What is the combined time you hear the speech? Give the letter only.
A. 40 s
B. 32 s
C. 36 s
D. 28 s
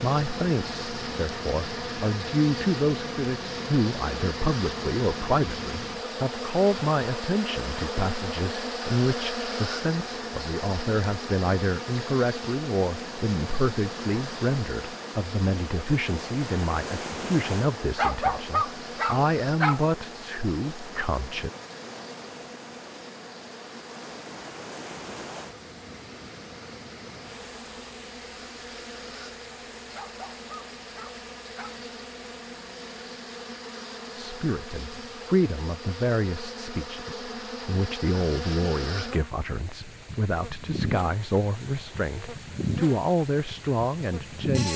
B.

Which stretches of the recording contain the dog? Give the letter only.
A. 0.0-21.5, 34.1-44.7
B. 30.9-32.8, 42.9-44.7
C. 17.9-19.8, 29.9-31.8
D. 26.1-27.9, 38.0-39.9
C.